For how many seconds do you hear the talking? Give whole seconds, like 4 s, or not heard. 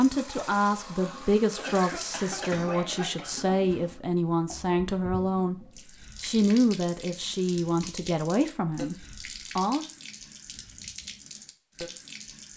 10 s.